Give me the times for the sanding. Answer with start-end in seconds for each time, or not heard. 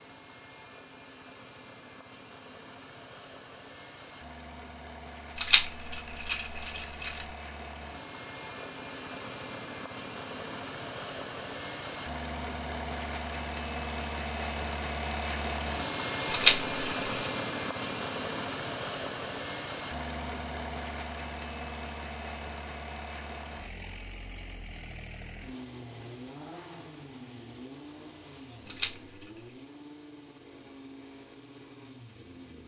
not heard.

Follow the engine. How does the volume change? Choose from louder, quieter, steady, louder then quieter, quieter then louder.
louder then quieter.